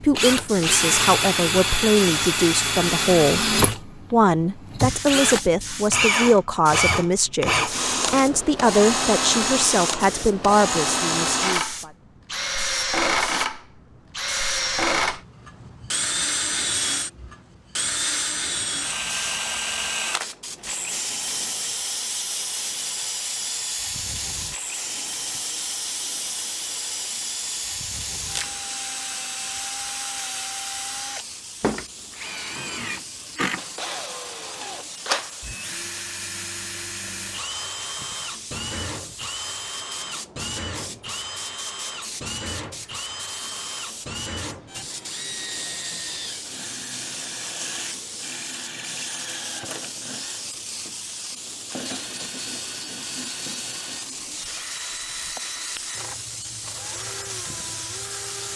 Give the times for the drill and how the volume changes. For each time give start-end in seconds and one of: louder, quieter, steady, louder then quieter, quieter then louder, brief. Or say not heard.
0.0-58.5 quieter.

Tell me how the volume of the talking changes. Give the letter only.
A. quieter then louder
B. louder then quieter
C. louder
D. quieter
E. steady
E.